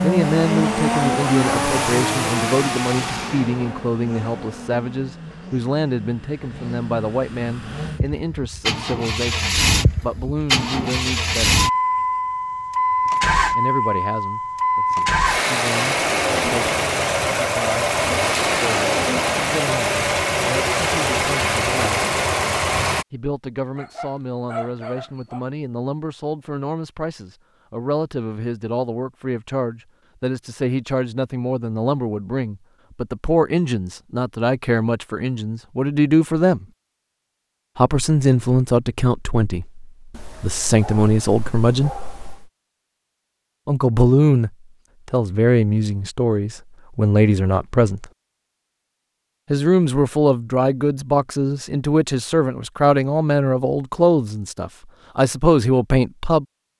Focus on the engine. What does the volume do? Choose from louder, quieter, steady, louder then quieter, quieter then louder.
quieter then louder.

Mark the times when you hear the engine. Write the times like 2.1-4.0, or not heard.
0.0-23.1.